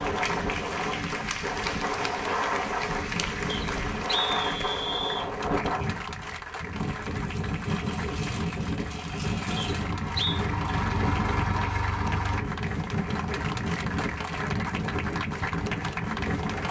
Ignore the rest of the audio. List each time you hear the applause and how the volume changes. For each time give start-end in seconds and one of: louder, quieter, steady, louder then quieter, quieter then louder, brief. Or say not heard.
0.0-16.6 quieter then louder.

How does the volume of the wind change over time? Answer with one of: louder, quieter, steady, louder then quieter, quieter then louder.
steady.